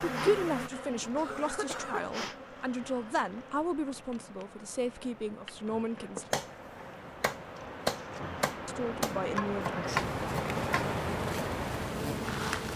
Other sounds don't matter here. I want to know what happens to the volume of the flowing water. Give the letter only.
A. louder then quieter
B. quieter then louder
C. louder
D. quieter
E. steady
C.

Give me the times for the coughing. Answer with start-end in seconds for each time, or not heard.
1.1-2.0.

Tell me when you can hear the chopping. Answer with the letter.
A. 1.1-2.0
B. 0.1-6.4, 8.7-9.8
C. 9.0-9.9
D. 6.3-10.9
D.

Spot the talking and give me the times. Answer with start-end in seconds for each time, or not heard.
0.1-6.4, 8.7-9.8.